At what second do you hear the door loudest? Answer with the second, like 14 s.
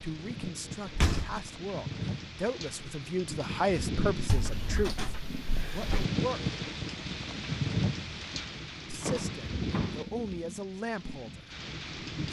1 s.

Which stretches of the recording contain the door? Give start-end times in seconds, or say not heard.
0.8-1.4, 4.2-6.0, 9.0-9.9.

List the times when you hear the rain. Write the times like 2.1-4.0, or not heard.
0.0-12.2.